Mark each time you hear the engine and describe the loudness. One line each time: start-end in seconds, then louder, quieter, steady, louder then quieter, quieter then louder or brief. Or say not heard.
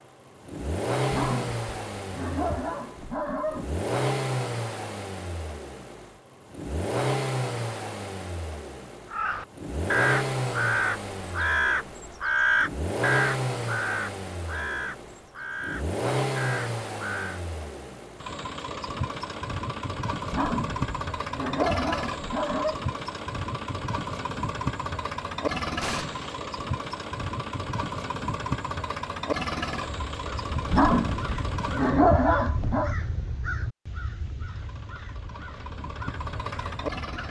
0.0-32.0 steady
34.4-37.2 brief.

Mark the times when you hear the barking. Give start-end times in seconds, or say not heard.
1.1-3.7, 20.2-22.8, 30.6-33.0.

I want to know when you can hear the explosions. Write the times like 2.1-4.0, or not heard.
25.8-26.4.